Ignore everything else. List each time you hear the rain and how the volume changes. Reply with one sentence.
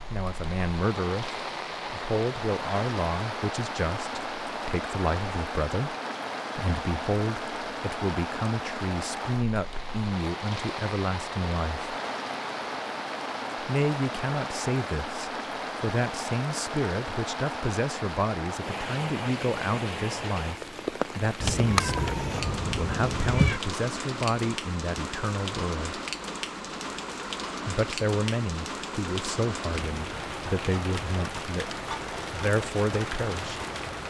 The rain can be heard from 0.0 to 34.0 s, at a steady volume.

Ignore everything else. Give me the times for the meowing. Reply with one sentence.
You can hear the meowing from 21.4 to 23.6 s.